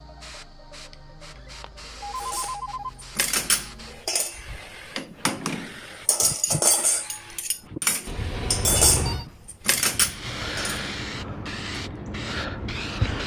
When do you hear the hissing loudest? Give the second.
13 s.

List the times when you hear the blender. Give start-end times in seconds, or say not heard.
not heard.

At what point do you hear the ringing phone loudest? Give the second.
9 s.